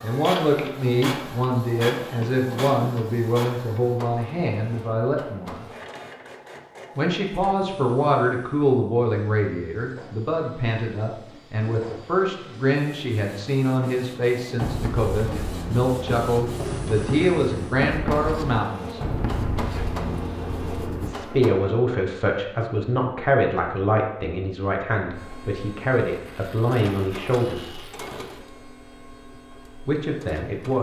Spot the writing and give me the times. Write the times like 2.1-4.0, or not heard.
14.6-21.1.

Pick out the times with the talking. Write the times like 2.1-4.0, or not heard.
0.0-5.7, 7.0-19.0, 21.0-27.8, 29.9-30.7.